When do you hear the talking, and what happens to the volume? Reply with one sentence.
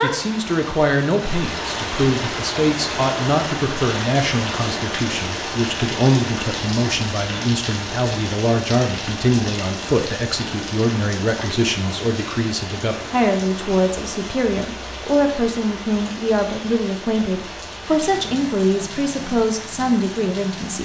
You can hear the talking from 0.0 to 20.8 s, at a steady volume.